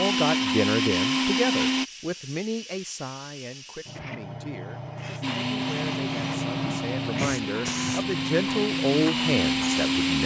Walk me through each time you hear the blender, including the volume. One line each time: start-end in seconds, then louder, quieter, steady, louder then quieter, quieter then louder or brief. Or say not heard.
0.0-1.9 brief
5.2-10.2 louder.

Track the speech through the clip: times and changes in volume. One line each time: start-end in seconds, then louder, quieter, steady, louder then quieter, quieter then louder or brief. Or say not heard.
0.0-10.2 quieter then louder.